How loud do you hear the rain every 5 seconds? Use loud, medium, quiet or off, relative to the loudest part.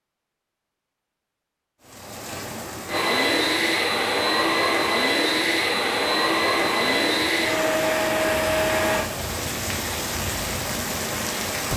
medium, medium, loud.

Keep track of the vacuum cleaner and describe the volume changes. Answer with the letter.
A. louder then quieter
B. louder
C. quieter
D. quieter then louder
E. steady
E.